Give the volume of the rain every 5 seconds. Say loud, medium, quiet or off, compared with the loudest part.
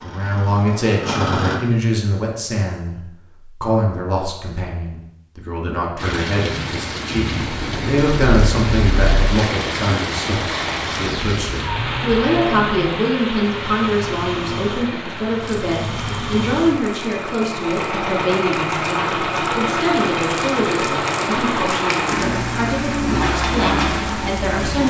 off, loud, loud, medium, loud.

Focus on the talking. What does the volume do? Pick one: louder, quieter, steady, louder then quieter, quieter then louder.
steady.